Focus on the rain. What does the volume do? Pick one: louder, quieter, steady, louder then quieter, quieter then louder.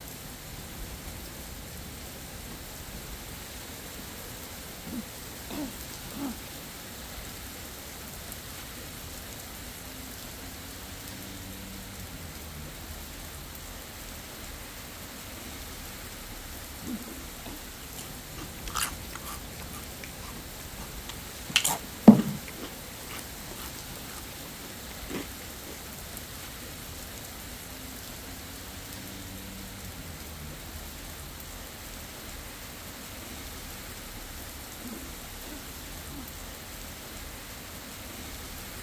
steady.